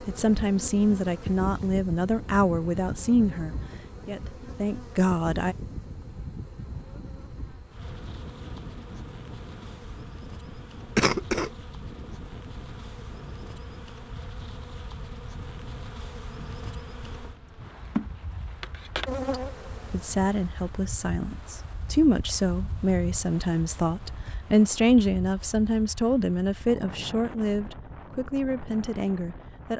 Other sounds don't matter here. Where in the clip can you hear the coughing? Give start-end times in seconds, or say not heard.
10.9-11.5.